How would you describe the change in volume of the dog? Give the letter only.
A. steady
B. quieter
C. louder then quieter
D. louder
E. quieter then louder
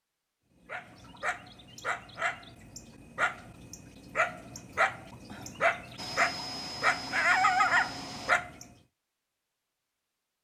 D.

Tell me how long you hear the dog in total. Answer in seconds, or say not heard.
8 s.